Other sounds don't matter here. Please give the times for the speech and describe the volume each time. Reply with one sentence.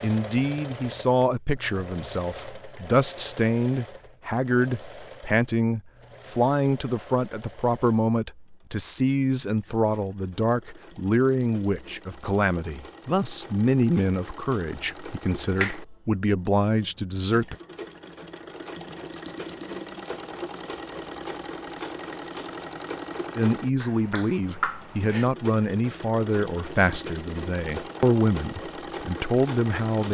You can hear the speech from 0.0 to 17.6 s, at a steady volume; and from 23.4 to 30.0 s, at a steady volume.